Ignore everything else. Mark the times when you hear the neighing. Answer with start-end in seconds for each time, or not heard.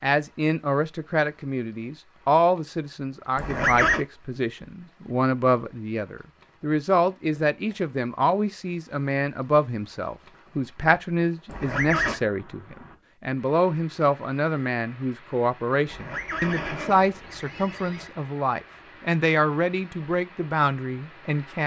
3.4-4.0, 11.4-12.2, 15.8-18.1.